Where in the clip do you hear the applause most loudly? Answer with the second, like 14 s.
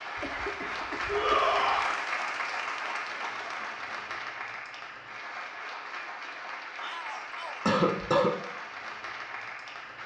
2 s.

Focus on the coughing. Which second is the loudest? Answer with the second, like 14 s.
8 s.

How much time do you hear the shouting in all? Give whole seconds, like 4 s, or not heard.
2 s.